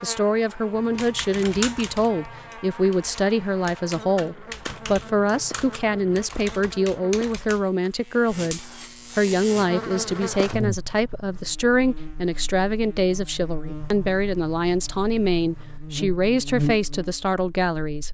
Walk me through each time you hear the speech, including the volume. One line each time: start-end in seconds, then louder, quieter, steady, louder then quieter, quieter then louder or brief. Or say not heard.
0.0-18.1 steady.